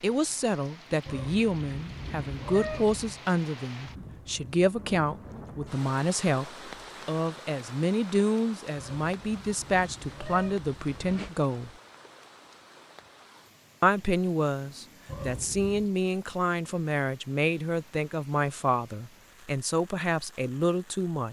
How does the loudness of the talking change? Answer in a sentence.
The loudness of the talking stays about the same.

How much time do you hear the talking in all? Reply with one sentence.
You can hear the talking for 19 seconds altogether.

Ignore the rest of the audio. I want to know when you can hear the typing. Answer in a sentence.
You can't hear the typing here.